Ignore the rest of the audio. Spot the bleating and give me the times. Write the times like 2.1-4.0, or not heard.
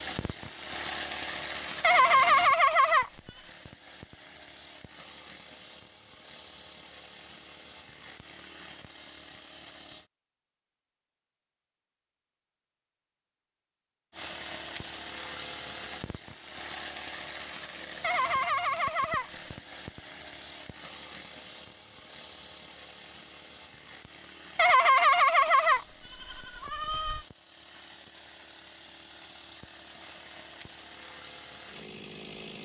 1.8-3.1, 18.0-19.3, 24.6-27.2.